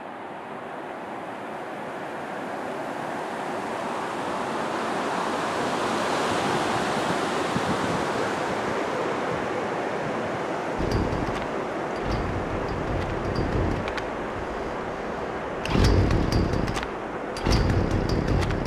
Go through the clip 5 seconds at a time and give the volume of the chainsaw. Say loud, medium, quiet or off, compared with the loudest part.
off, off, medium, loud.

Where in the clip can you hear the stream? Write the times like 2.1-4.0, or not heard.
0.0-18.6.